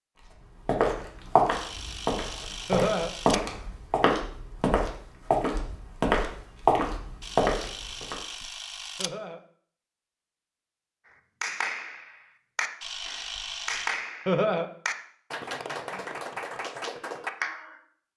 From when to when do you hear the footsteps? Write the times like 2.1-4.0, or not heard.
0.7-8.2.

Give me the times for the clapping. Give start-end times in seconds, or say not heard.
11.4-17.8.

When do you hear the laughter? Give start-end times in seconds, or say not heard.
2.6-3.1, 8.9-9.4, 14.2-14.7.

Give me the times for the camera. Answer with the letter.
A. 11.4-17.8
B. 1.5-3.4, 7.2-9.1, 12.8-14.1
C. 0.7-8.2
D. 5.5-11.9
B.